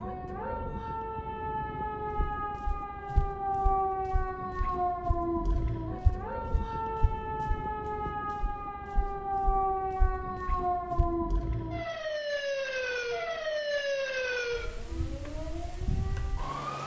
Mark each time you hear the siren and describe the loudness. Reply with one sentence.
The siren can be heard from 0.0 to 16.8 s, at a steady volume.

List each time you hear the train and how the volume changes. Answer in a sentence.
The train can't be heard in this clip.